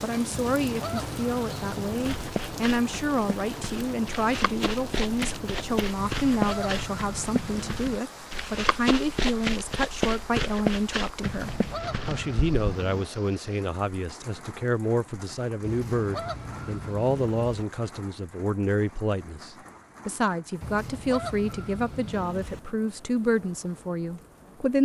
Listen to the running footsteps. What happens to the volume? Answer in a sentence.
The loudness of the running footsteps goes up.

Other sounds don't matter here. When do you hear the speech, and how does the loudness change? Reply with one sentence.
You can hear the speech from 0.0 to 24.8 s, at a steady volume.